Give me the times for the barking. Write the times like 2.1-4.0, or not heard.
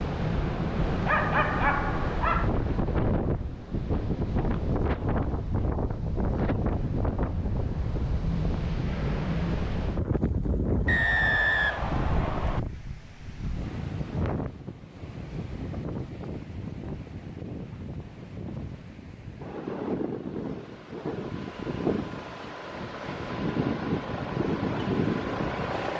1.0-2.5.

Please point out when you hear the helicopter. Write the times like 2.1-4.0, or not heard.
not heard.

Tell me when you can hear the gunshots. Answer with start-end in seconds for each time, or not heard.
not heard.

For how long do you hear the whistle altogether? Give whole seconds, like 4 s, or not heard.
2 s.